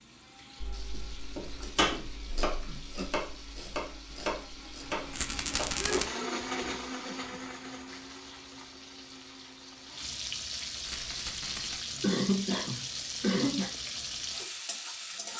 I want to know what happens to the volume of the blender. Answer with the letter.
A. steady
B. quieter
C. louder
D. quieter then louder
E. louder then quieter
E.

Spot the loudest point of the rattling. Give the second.
6 s.